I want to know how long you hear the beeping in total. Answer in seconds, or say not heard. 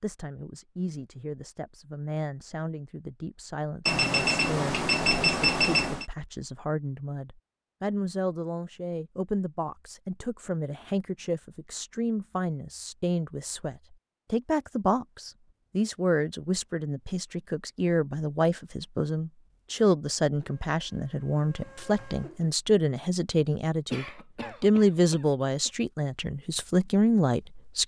2 s.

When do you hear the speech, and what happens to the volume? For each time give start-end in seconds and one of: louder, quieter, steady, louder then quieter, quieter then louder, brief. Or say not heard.
0.0-27.8 louder.